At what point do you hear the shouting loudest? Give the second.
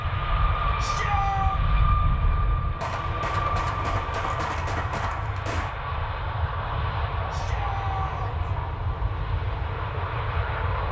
1 s.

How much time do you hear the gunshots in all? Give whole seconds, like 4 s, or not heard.
3 s.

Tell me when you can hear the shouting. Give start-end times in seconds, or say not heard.
0.8-1.6, 7.3-8.5.